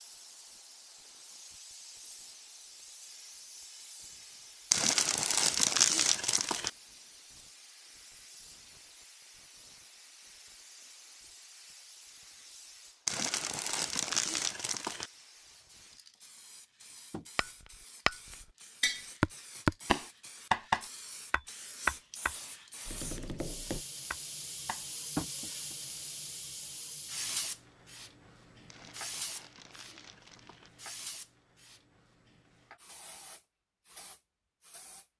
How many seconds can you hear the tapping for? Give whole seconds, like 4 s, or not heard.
9 s.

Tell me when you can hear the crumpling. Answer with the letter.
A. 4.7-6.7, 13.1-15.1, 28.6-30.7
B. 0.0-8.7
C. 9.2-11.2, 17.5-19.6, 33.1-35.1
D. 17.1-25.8
A.